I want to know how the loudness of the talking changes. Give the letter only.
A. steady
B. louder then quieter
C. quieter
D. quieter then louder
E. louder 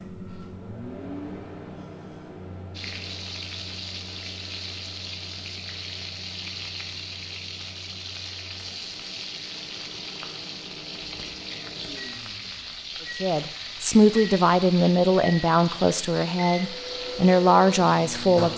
D.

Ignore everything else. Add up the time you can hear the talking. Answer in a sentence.
The talking can be heard for 5 seconds in total.